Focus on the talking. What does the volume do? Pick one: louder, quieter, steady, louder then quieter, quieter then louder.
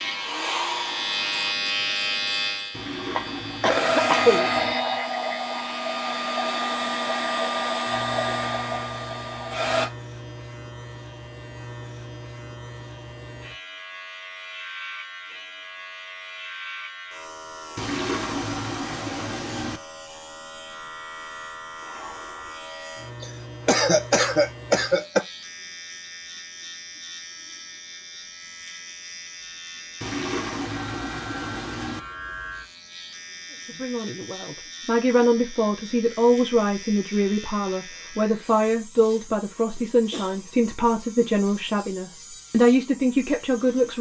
steady.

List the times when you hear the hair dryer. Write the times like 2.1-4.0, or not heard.
0.0-1.6, 3.6-9.9.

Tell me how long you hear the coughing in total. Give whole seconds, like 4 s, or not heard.
4 s.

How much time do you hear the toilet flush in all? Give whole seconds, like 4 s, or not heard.
6 s.